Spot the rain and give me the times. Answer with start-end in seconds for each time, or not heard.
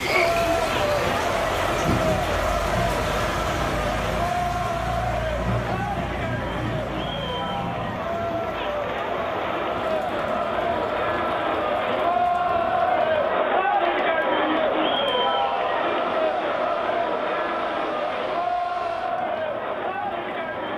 0.0-20.7.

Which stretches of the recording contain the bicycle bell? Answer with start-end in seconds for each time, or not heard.
not heard.